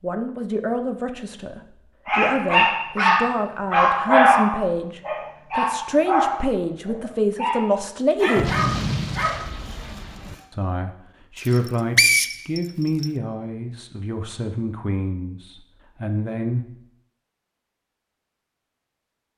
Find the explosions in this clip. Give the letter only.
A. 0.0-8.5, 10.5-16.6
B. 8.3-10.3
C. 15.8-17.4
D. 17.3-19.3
B.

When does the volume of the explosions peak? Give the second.
9 s.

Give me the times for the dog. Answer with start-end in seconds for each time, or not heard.
2.0-10.4.